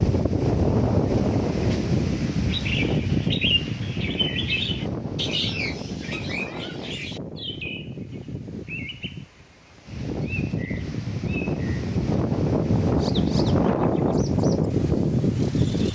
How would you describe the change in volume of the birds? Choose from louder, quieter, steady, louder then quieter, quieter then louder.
quieter.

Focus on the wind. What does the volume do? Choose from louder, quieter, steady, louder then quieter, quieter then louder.
quieter then louder.